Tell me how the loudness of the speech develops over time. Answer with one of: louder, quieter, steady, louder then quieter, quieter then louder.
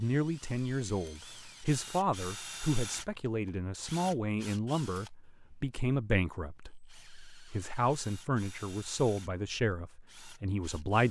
steady.